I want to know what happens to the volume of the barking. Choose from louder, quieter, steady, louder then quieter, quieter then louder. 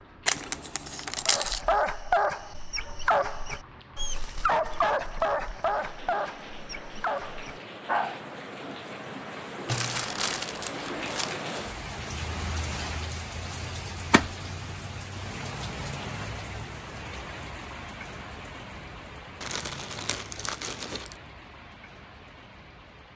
quieter.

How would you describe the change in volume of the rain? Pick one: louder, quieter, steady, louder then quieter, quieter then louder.
louder then quieter.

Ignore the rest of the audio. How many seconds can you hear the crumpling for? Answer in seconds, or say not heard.
5 s.